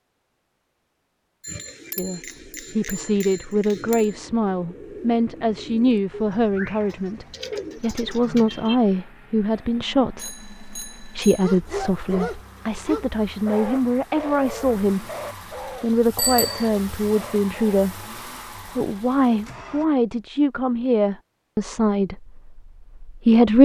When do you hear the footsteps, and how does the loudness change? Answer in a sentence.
The footsteps can't be heard in this clip.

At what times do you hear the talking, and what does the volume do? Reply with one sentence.
You can hear the talking from 1.9 to 15.1 s, at a steady volume; briefly from 15.8 to 18.1 s; and from 18.8 to 23.5 s, getting quieter.